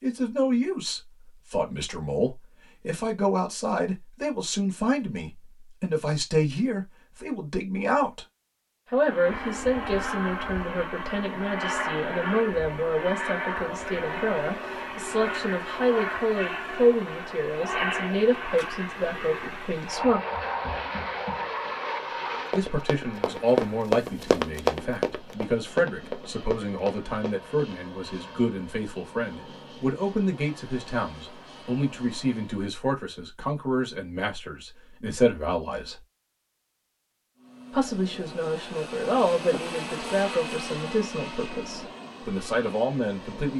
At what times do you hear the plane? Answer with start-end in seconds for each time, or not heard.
8.9-32.8, 37.4-43.5.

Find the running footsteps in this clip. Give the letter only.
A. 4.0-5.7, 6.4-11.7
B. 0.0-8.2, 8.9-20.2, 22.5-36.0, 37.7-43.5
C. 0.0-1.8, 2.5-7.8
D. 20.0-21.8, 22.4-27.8
D.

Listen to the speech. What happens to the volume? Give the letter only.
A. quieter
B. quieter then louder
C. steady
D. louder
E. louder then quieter
C.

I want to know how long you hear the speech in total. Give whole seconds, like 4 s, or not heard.
39 s.